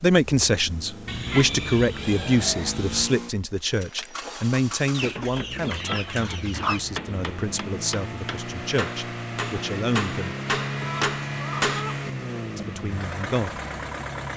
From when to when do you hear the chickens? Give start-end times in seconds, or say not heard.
1.1-3.1, 4.9-6.8, 10.8-12.1.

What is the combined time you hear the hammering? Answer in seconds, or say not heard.
7 s.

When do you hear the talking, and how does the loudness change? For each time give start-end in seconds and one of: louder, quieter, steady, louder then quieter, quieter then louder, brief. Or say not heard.
0.0-10.4 quieter
12.6-13.6 brief.